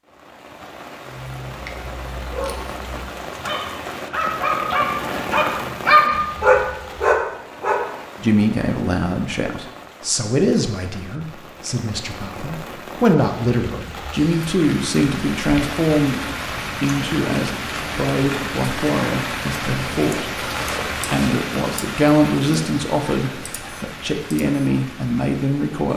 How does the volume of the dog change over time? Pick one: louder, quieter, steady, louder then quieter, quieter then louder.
louder.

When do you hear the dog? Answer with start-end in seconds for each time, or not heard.
1.1-7.8.